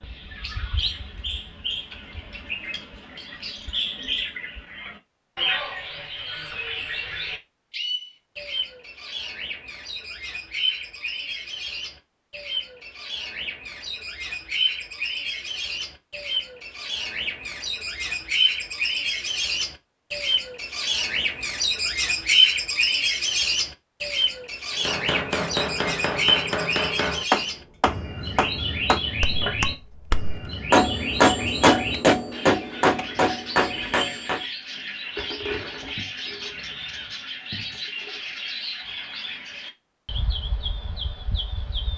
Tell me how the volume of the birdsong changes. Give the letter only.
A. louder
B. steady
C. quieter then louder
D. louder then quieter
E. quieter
D.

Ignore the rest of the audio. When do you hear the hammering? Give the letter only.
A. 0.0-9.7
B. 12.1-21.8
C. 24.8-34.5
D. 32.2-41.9
C.